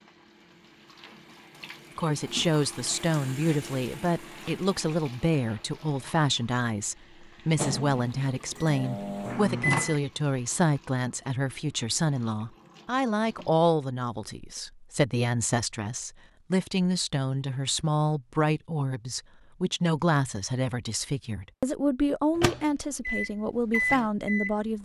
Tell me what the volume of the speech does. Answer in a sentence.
The volume of the speech stays about the same.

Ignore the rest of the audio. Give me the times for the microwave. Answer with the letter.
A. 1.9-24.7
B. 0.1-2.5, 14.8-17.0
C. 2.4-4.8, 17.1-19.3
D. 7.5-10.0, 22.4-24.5
D.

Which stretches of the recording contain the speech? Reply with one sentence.
You can hear the speech from 1.9 to 24.7 s.